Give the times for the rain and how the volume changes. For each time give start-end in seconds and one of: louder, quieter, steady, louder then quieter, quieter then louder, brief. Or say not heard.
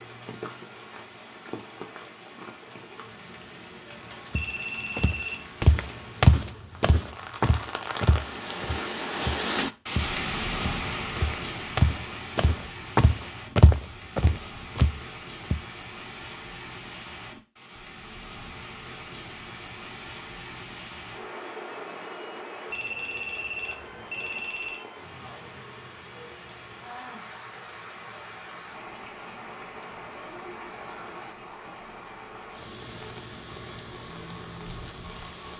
0.0-35.5 louder then quieter.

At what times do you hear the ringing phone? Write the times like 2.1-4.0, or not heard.
4.3-5.5, 22.7-24.9.